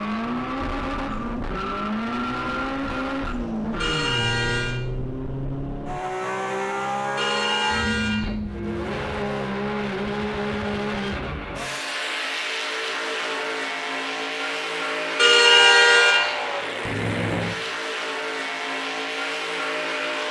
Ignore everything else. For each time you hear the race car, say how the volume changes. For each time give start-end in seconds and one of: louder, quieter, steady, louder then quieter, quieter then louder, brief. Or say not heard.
0.0-20.2 steady.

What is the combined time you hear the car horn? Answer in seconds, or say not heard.
3 s.